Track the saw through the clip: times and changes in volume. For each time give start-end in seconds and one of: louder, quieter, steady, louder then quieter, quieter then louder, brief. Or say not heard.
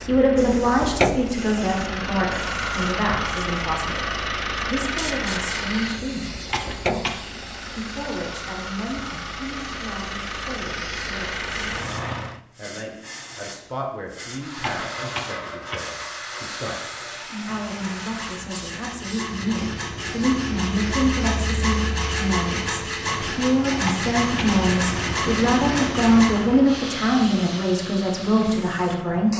14.7-26.5 louder.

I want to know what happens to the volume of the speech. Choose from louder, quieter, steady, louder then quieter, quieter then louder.
quieter then louder.